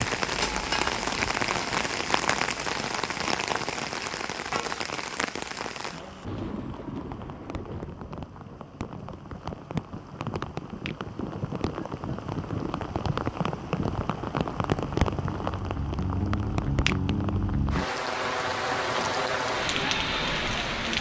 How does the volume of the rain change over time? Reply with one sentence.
The volume of the rain goes down, then up.